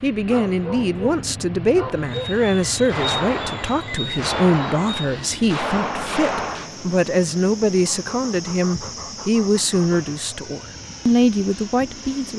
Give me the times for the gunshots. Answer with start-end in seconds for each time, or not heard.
2.9-6.7.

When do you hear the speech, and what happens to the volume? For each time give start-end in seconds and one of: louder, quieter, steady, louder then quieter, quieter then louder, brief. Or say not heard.
0.0-12.3 steady.